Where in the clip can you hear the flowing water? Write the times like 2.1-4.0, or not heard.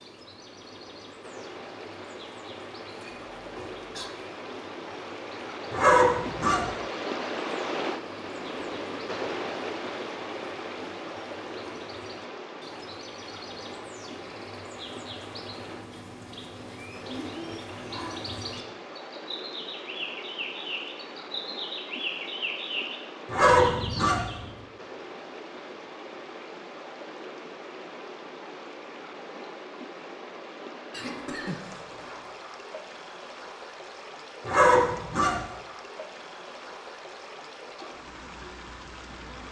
0.0-39.4.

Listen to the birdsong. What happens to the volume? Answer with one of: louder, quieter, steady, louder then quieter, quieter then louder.
louder.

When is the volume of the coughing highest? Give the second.
31 s.